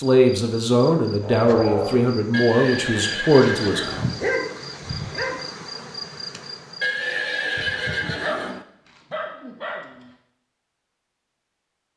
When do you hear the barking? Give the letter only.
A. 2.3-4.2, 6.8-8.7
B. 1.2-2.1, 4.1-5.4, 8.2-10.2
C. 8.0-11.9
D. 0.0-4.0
B.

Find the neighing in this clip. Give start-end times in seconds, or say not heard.
2.3-4.2, 6.8-8.7.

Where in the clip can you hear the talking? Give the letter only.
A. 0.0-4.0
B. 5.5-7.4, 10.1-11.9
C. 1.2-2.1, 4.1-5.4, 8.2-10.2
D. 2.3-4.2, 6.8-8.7
A.